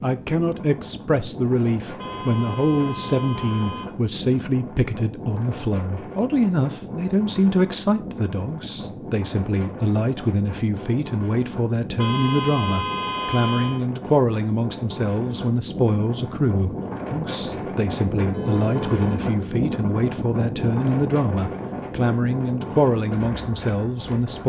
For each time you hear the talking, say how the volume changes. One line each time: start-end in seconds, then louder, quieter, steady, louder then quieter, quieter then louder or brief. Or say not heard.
0.0-24.4 steady.